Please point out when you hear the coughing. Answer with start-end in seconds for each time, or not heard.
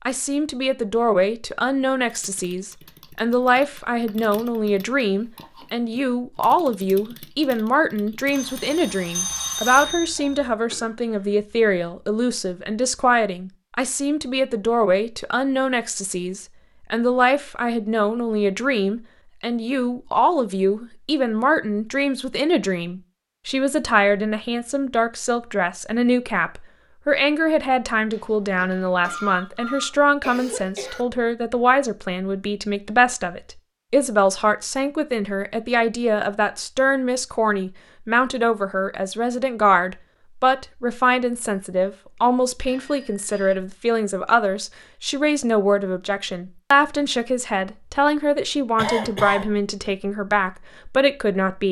10.7-11.2, 29.0-31.1, 48.8-49.5.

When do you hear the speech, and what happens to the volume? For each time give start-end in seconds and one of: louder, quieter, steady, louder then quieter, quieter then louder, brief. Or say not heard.
0.1-51.6 steady.